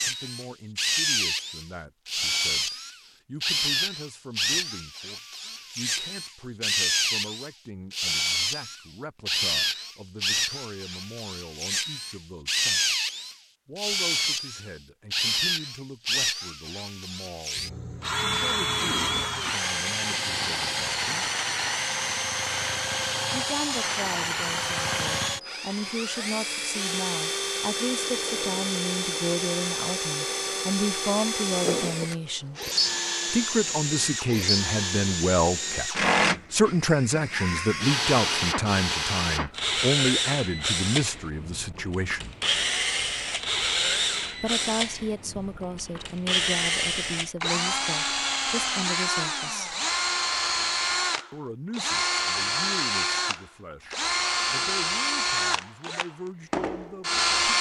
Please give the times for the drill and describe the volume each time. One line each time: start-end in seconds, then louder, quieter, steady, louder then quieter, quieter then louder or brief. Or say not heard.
0.0-57.5 steady.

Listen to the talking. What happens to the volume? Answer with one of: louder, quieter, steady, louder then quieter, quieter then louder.
louder then quieter.